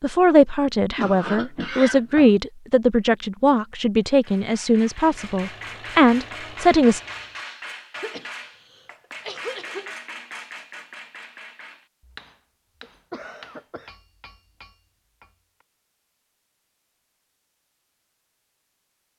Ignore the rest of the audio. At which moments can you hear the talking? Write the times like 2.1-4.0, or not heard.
0.0-7.0.